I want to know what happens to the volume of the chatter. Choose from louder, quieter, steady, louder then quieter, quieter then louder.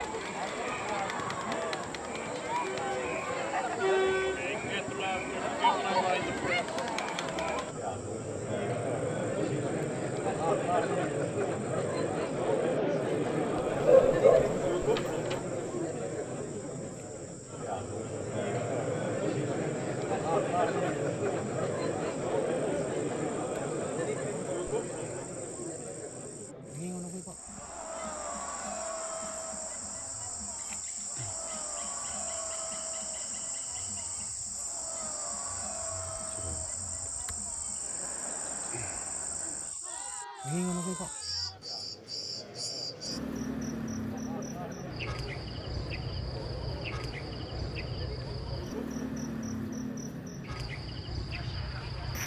quieter.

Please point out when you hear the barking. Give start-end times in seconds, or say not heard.
13.6-15.4.